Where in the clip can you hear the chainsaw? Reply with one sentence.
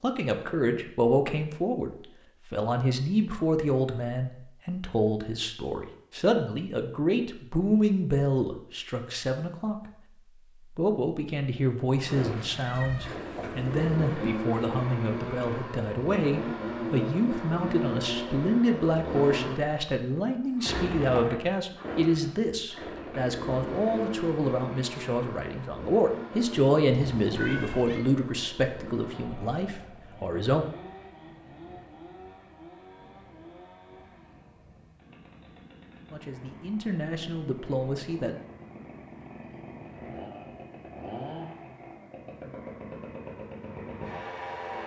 The chainsaw can be heard from 12.1 to 44.8 s.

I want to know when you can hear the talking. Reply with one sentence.
You can hear the talking from 0.0 to 9.9 s, from 10.7 to 30.6 s and from 36.1 to 38.4 s.